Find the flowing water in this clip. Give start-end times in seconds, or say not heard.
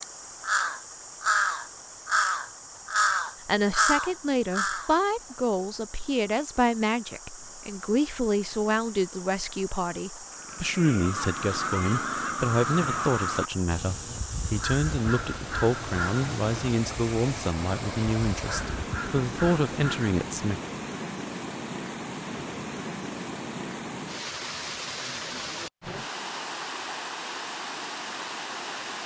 0.0-29.0.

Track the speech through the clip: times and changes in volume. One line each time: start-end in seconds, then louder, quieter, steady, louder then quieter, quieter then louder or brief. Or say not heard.
3.5-20.6 steady.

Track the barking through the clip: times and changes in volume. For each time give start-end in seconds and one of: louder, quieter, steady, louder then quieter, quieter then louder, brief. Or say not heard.
not heard.